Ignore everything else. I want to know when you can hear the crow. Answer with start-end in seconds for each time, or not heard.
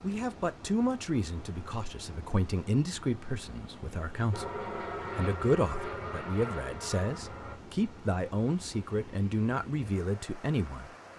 not heard.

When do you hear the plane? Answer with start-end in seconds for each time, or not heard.
4.3-7.5.